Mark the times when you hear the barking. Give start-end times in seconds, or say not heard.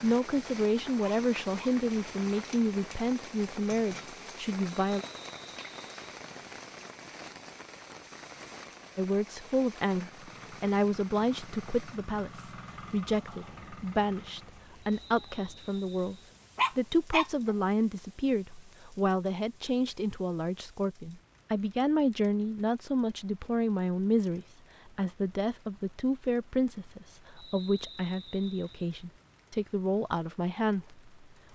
1.0-1.7, 16.6-17.5.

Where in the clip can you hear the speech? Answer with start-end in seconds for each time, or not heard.
0.0-5.0, 8.9-31.5.